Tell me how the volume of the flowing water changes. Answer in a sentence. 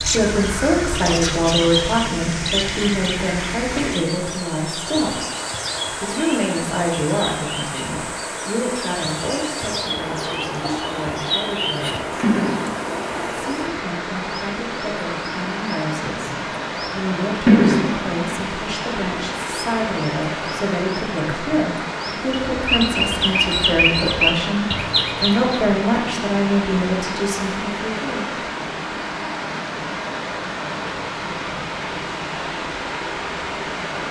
The loudness of the flowing water stays about the same.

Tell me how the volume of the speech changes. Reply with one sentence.
The volume of the speech goes down, then up.